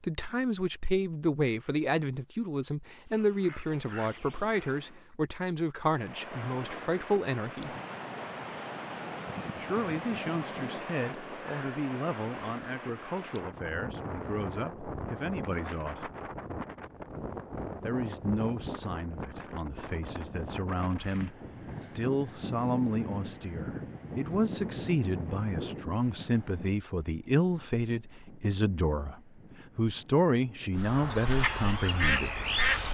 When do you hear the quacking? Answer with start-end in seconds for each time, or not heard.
3.0-5.2, 30.8-32.8.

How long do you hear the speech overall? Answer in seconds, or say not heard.
29 s.